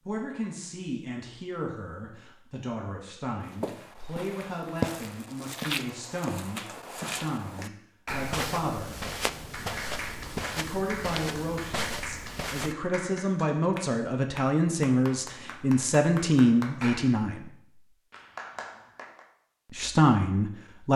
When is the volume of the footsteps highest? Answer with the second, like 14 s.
5 s.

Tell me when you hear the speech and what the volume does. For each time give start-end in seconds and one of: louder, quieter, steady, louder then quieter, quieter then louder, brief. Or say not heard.
0.1-9.0 steady
10.6-17.5 louder
19.7-20.9 brief.